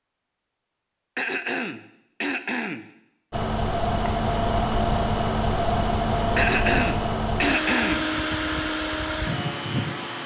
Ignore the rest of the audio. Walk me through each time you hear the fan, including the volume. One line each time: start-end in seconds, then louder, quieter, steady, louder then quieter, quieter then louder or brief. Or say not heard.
3.3-10.2 steady.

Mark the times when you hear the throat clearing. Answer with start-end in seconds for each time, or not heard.
1.1-2.9, 6.3-8.1.